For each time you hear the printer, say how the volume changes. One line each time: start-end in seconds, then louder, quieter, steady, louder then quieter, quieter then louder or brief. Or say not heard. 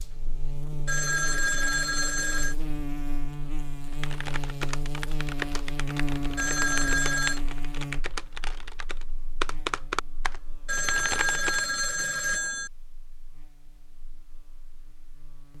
not heard.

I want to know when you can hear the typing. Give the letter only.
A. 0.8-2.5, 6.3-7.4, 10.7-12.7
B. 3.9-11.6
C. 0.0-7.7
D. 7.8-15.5
B.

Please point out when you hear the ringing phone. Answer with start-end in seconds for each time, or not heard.
0.8-2.5, 6.3-7.4, 10.7-12.7.